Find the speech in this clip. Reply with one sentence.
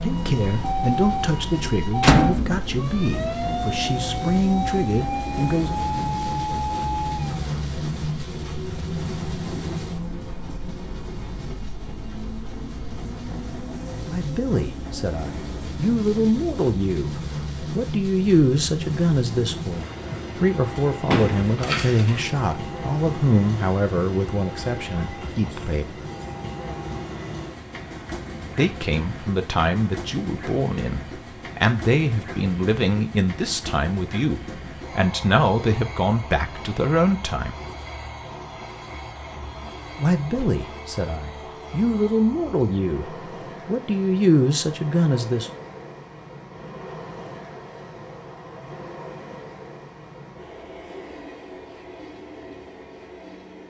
The speech can be heard from 0.0 to 5.8 s, from 14.1 to 26.1 s, from 28.6 to 37.5 s and from 40.0 to 45.5 s.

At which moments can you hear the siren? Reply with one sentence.
The siren can be heard from 0.0 to 7.5 s.